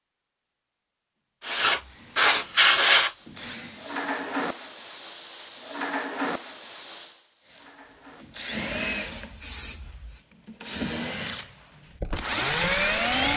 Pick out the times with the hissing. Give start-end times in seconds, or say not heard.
1.4-10.2.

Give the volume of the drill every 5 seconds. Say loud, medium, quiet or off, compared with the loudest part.
quiet, medium, loud.